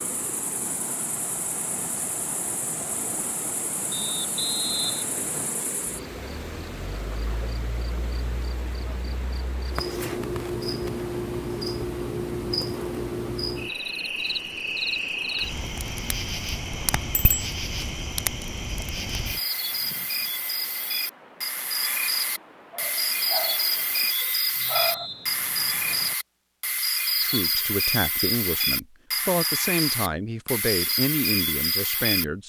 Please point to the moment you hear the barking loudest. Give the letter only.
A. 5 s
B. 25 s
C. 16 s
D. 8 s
B.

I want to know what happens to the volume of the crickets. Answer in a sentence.
The volume of the crickets goes up.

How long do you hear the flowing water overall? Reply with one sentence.
The flowing water can be heard for 24 seconds in total.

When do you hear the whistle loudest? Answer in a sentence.
The loudest moment of the whistle is at 5 seconds.